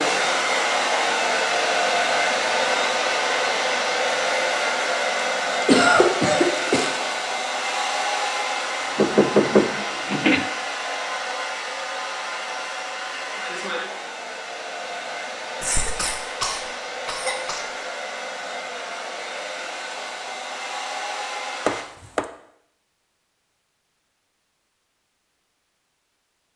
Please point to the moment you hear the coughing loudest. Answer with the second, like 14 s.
6 s.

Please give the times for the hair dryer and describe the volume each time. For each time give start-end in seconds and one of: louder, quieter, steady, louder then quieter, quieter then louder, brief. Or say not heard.
0.0-21.9 quieter.